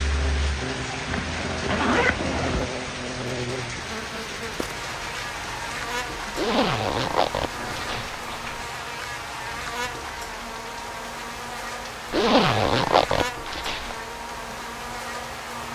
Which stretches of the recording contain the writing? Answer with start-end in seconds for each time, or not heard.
not heard.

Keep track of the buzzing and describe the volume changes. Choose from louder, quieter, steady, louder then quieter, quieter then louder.
steady.